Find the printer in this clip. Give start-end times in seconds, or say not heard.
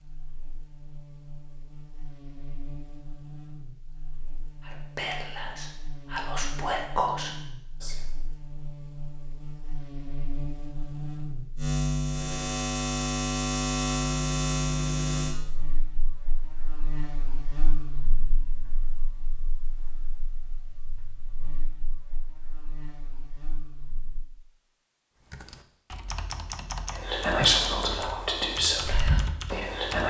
not heard.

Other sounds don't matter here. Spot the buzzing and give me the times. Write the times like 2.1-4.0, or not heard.
0.0-24.2.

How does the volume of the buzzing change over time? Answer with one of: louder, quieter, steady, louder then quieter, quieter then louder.
louder then quieter.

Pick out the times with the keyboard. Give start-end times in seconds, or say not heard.
25.2-30.0.